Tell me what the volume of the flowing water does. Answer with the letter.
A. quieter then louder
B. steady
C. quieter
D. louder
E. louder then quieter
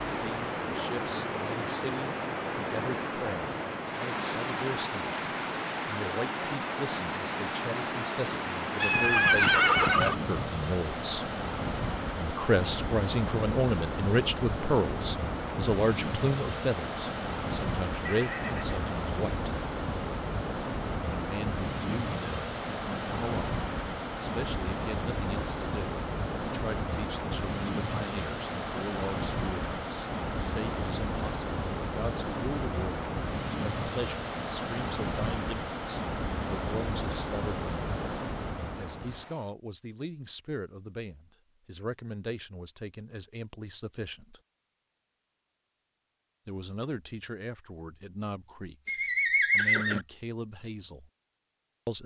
B.